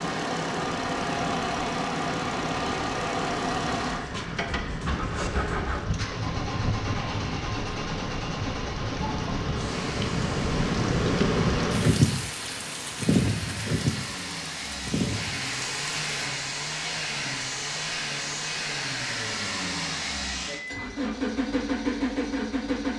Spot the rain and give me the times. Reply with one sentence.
The rain can be heard from 0.0 to 16.3 s.